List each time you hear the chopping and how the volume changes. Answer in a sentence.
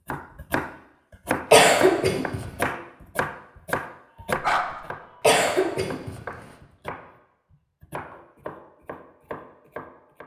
The chopping can be heard from 0.1 to 10.2 s, getting quieter.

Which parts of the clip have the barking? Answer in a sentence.
You can hear the barking from 4.3 to 4.8 s.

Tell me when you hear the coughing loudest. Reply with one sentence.
The loudest moment of the coughing is at 2 seconds.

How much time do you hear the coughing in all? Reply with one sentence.
The coughing can be heard for 2 seconds in total.